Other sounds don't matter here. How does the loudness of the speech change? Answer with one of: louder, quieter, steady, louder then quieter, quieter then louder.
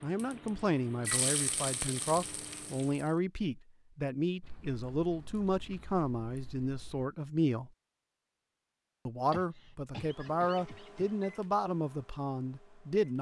steady.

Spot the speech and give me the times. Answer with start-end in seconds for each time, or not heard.
0.0-7.7, 9.1-13.1.